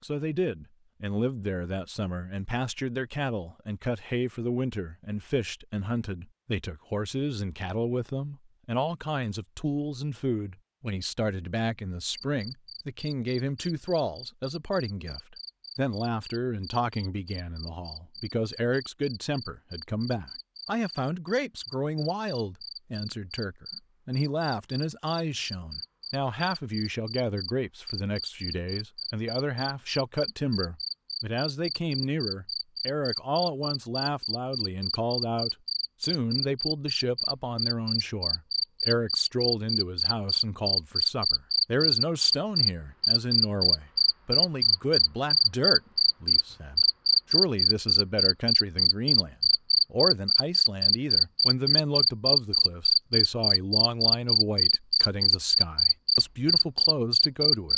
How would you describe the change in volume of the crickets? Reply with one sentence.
The loudness of the crickets goes up.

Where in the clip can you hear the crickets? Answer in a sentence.
The crickets can be heard from 12.2 to 57.7 s.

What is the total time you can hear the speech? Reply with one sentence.
You can hear the speech for 58 seconds altogether.